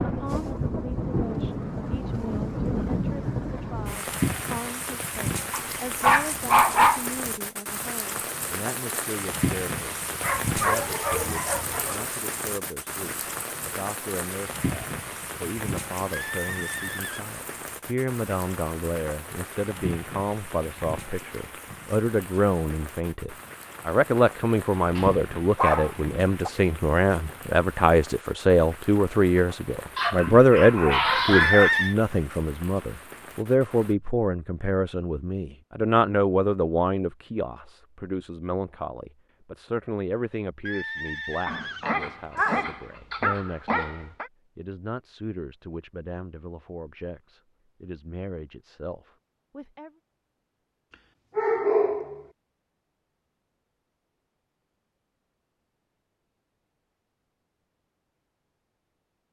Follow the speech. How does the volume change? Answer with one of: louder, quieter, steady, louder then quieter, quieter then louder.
louder then quieter.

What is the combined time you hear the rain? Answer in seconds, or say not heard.
34 s.